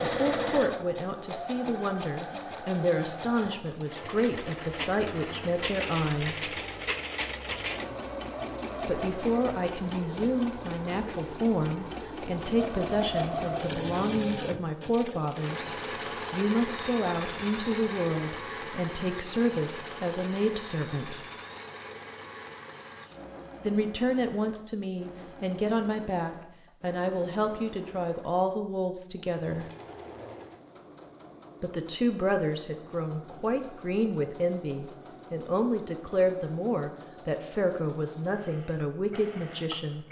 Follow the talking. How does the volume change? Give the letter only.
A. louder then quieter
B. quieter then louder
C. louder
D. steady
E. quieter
D.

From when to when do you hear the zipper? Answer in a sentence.
The zipper can be heard from 29.9 to 30.6 s.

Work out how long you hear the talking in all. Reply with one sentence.
The talking can be heard for 33 seconds in total.